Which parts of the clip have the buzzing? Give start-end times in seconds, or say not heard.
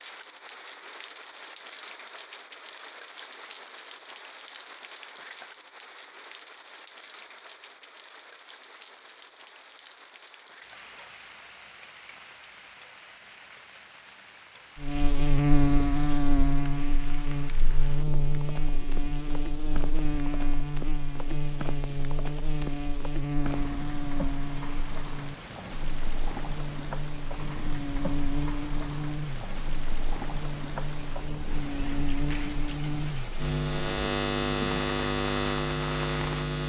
14.8-36.6.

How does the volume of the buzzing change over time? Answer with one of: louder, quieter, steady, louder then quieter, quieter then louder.
quieter then louder.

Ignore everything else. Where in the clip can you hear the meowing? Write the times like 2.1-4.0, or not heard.
not heard.